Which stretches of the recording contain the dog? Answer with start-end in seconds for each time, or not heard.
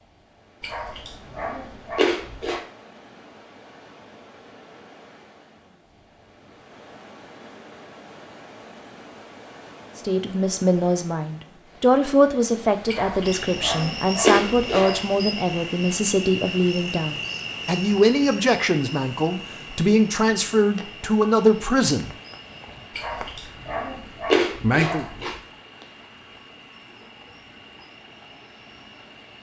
0.6-2.6, 12.8-15.0, 22.9-25.4.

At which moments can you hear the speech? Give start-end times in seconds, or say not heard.
9.9-22.1, 24.6-25.1.